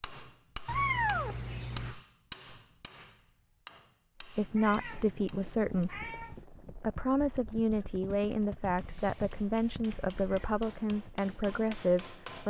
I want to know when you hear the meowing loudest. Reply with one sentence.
The volume of the meowing peaks at 1 second.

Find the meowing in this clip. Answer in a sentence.
You can hear the meowing from 0.7 to 1.9 s, from 4.4 to 6.5 s and from 8.8 to 10.7 s.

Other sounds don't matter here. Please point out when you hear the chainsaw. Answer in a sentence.
You can't hear the chainsaw here.